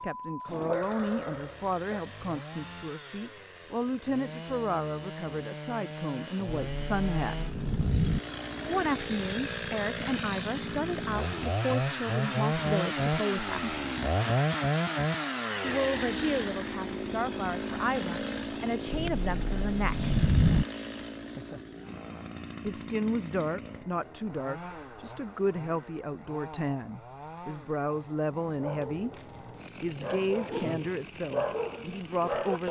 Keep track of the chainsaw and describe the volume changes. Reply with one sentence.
The volume of the chainsaw goes up, then down.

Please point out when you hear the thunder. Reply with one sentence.
The thunder can be heard from 6.6 to 8.2 s and from 18.9 to 20.6 s.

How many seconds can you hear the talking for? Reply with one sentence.
You can hear the talking for 26 seconds altogether.